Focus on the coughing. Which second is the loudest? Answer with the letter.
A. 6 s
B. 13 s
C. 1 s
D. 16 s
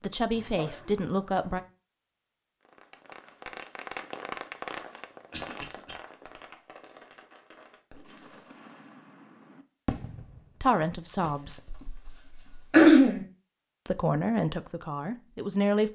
B.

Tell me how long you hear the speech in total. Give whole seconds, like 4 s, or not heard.
5 s.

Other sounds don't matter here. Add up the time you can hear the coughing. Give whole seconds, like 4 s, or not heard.
4 s.